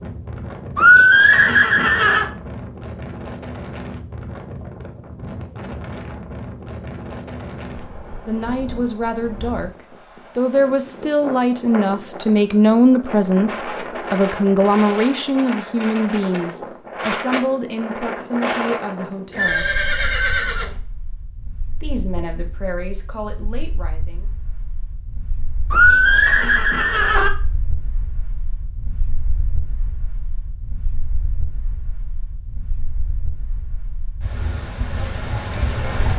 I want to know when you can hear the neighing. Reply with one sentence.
You can hear the neighing from 0.8 to 2.2 s, from 19.3 to 20.8 s and from 25.7 to 27.3 s.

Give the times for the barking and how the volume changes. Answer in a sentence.
You can't hear the barking here.